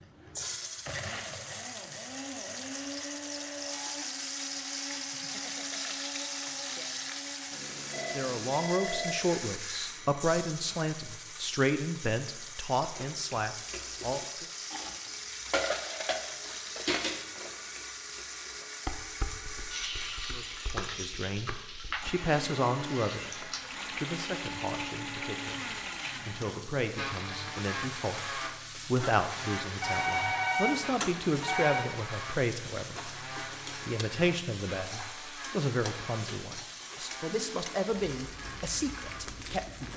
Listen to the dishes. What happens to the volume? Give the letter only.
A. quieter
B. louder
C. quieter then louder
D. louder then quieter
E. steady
D.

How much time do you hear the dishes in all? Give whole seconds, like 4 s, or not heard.
9 s.